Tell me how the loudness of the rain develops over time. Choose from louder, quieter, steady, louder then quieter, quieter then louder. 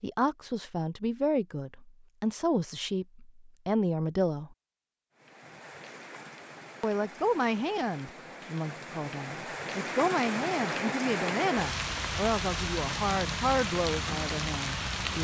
louder.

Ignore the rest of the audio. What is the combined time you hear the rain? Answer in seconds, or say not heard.
10 s.